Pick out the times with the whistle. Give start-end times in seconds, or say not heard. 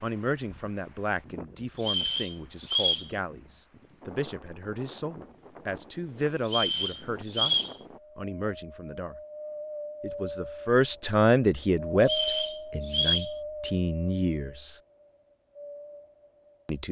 1.8-3.1, 6.5-7.8, 12.0-13.3.